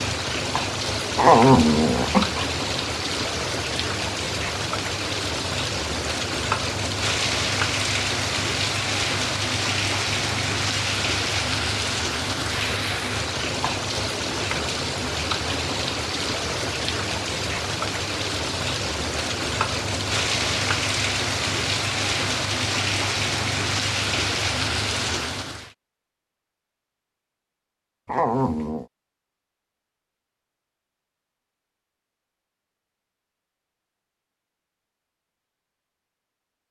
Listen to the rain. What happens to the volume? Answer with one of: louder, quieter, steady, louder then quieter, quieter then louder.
steady.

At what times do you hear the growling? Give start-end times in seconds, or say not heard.
1.1-2.5, 28.1-28.9.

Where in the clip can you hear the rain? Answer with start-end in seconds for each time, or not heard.
0.0-25.8.